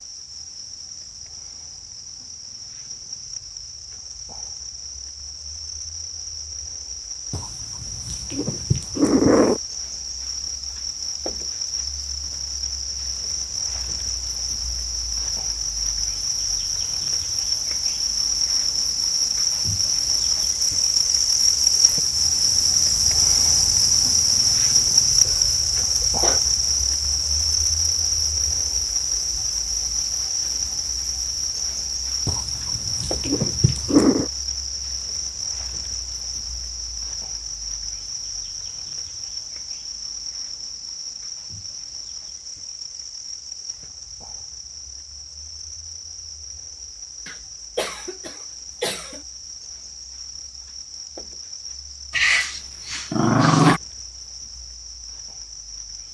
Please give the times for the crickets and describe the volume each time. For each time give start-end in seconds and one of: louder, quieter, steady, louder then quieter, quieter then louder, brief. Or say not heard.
0.0-56.0 louder then quieter.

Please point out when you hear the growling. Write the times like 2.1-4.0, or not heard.
7.3-9.6, 32.2-34.3, 52.1-53.8.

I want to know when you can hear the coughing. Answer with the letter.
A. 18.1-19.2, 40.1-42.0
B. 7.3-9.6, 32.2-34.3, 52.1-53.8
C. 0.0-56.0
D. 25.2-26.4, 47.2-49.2
D.